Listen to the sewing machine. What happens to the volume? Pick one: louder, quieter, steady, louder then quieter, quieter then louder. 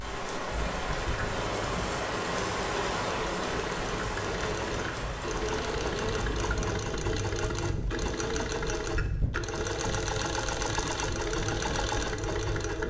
louder.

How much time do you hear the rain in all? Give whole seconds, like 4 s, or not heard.
7 s.